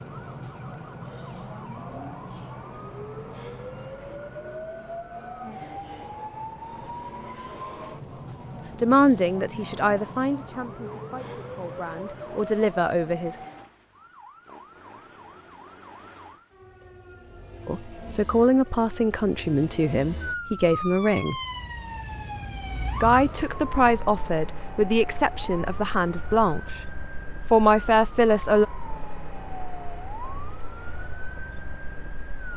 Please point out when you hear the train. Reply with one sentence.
You can hear the train from 0.0 to 13.7 s.